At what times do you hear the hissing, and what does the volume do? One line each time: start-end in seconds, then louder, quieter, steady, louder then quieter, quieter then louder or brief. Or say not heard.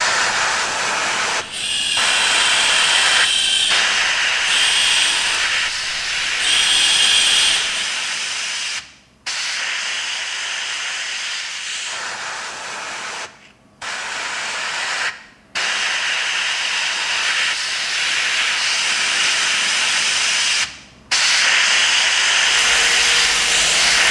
0.0-24.0 quieter then louder.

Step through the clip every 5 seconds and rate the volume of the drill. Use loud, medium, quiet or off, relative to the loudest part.
loud, loud, off, off, medium.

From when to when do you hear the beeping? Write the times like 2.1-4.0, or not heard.
not heard.